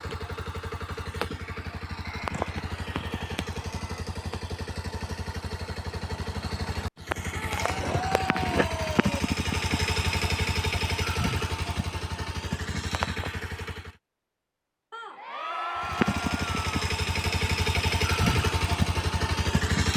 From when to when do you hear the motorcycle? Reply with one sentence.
You can hear the motorcycle from 0.0 to 13.9 s and from 15.8 to 19.9 s.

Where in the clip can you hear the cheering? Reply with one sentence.
The cheering can be heard from 2.0 to 4.0 s, from 7.3 to 9.2 s and from 14.9 to 16.9 s.